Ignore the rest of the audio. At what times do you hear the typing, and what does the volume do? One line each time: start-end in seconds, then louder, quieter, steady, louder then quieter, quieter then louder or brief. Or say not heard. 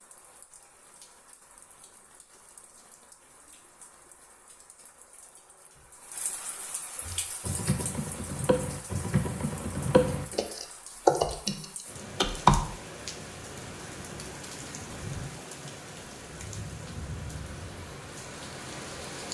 7.0-12.6 louder then quieter.